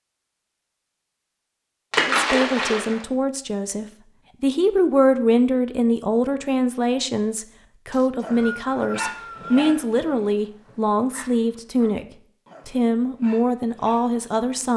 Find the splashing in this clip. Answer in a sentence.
The splashing can be heard from 1.9 to 3.0 s.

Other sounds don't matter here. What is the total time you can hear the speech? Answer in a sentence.
You can hear the speech for 12 seconds altogether.